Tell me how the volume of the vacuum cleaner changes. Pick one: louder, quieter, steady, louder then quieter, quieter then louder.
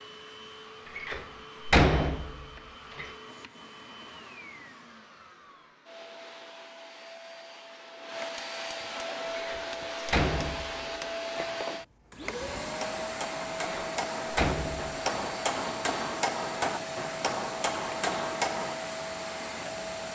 louder.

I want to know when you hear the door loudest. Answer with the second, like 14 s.
2 s.